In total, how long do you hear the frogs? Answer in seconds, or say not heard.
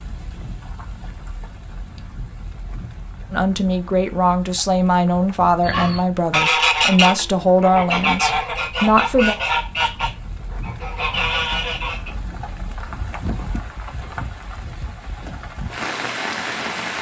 not heard.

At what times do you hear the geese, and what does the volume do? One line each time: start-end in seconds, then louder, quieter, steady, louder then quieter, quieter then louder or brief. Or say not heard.
5.6-12.1 quieter.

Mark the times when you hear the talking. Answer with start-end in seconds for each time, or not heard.
3.3-9.3.